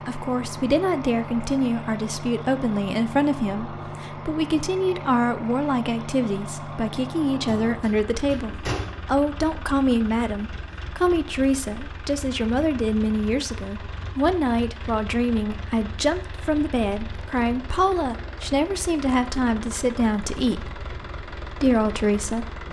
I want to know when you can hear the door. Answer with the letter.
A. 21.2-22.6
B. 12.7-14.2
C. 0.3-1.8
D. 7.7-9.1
D.